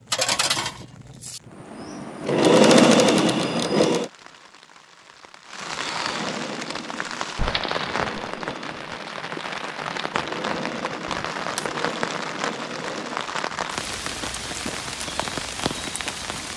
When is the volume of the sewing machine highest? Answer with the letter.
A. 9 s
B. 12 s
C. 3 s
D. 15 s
C.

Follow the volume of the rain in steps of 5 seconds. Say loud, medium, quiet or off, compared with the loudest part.
quiet, loud, loud, loud.